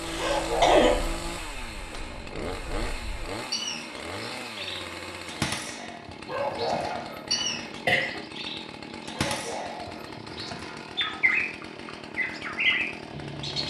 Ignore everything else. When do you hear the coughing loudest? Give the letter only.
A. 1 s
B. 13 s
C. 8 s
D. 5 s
A.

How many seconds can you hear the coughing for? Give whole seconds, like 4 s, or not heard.
2 s.